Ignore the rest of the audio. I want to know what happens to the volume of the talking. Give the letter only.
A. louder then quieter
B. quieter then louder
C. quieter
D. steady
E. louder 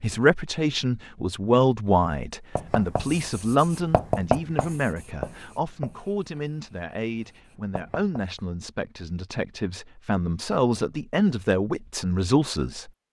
B.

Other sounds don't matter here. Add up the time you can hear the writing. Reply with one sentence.
You can hear the writing for 6 seconds altogether.